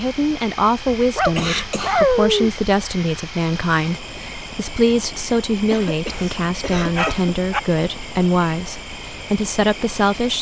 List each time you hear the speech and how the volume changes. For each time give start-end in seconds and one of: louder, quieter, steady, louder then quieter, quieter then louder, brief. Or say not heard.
0.0-10.3 steady.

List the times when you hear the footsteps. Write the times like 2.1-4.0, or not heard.
not heard.